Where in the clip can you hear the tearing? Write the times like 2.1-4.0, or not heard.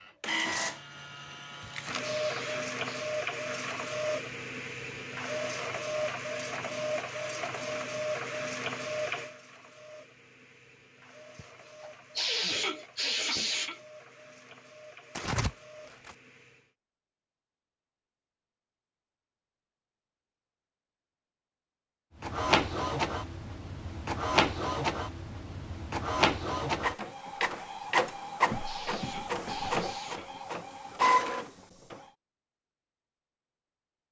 15.2-16.1.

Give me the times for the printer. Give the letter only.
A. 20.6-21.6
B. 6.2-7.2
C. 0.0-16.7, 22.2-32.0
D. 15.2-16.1
C.